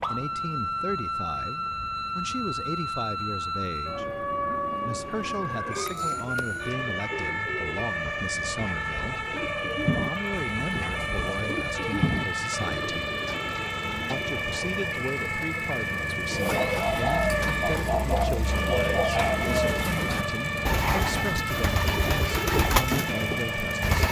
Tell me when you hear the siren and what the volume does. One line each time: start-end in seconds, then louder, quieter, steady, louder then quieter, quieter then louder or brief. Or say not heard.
0.0-24.0 steady.